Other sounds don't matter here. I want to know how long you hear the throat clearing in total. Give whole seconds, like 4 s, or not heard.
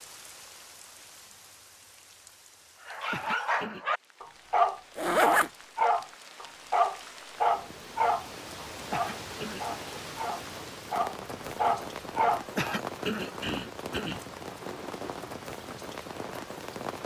3 s.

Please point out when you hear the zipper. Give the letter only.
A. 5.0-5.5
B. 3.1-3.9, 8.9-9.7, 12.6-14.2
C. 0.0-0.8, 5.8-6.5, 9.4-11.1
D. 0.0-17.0
A.